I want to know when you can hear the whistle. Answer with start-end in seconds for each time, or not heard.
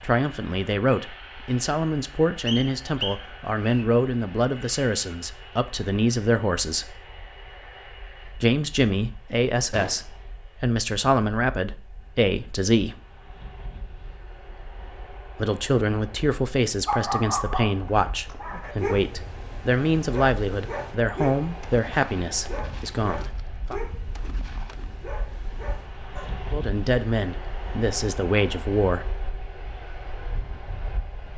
2.5-3.9.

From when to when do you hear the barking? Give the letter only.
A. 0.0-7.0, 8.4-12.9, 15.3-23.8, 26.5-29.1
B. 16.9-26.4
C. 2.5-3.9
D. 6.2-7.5
B.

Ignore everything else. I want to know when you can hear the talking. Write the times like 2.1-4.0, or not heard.
0.0-7.0, 8.4-12.9, 15.3-23.8, 26.5-29.1.